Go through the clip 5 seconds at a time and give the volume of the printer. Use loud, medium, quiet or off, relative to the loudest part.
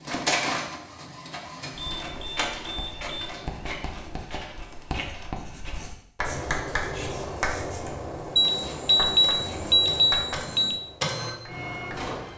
loud, medium, loud.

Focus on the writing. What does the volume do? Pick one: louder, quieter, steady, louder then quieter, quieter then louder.
louder then quieter.